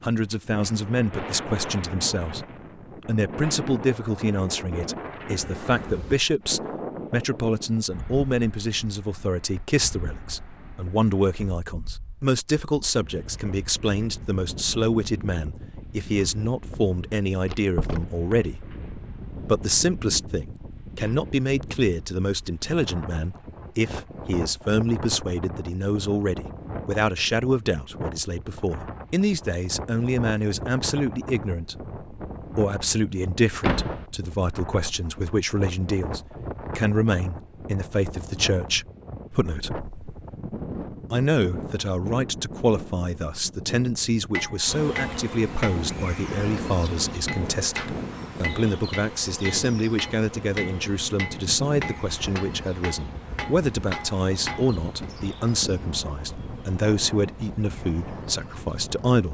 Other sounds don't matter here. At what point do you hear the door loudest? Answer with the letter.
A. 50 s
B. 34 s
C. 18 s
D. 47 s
B.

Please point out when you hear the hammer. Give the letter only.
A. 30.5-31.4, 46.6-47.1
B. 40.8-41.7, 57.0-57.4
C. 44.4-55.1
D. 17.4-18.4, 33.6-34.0
C.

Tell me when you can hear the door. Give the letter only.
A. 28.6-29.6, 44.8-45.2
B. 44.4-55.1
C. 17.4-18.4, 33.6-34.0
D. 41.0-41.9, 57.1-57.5
C.